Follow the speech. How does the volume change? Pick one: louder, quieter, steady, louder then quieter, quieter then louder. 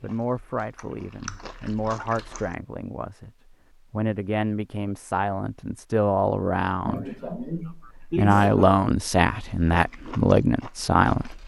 louder.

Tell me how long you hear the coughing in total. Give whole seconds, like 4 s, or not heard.
2 s.